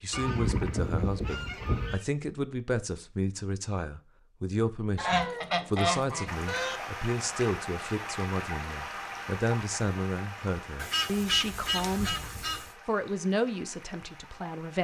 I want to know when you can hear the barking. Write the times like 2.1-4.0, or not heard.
not heard.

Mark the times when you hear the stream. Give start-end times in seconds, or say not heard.
6.2-14.7.